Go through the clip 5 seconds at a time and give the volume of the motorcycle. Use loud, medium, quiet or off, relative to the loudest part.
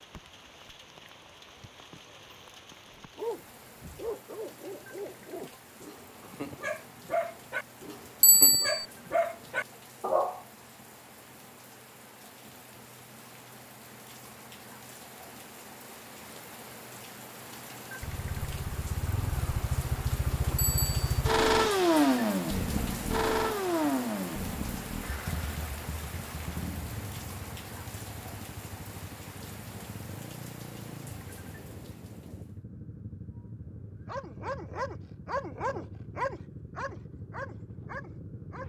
off, off, off, medium, loud, quiet, quiet, quiet.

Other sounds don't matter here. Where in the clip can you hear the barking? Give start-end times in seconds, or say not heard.
2.9-10.4, 34.0-38.6.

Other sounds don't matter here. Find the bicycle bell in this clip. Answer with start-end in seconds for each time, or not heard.
8.2-8.8, 20.6-21.1.